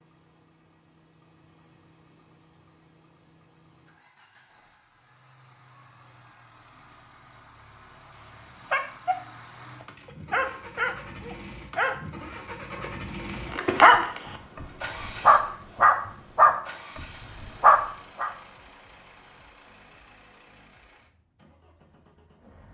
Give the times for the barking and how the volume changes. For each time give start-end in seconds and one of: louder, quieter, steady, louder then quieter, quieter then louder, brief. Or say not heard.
7.8-18.3 louder.